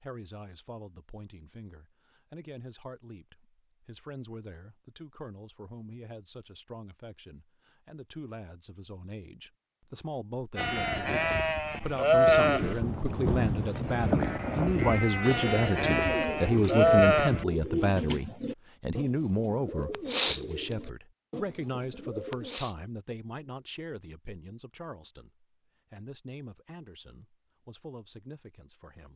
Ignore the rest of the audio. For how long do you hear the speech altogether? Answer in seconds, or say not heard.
29 s.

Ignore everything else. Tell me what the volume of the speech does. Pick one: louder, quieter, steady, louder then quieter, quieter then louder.
louder then quieter.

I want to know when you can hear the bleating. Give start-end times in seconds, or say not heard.
10.6-17.4.